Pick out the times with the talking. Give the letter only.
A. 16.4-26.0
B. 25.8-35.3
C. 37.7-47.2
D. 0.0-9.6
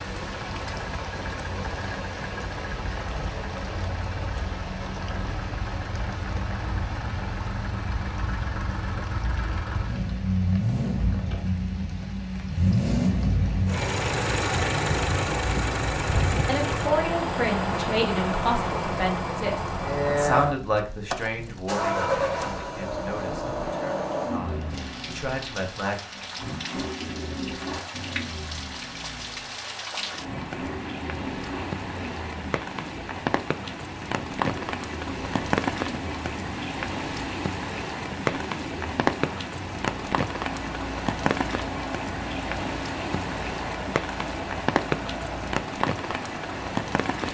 A.